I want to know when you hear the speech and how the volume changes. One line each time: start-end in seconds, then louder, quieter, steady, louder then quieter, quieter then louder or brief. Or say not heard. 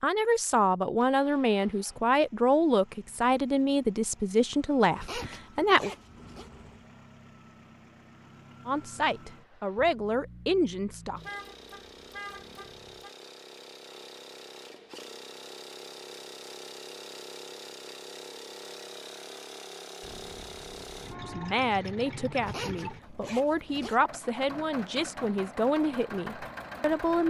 0.0-5.9 steady
8.7-11.2 brief
21.2-27.2 steady.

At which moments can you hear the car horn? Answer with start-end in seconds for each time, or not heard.
6.2-6.9, 11.2-13.1, 20.0-21.6.